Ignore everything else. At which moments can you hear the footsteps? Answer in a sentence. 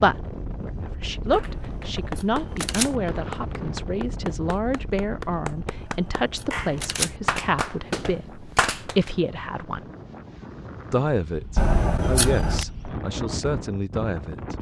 You can't hear the footsteps here.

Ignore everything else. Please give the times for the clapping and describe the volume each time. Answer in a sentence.
You can hear the clapping from 1.3 to 9.1 s, getting louder.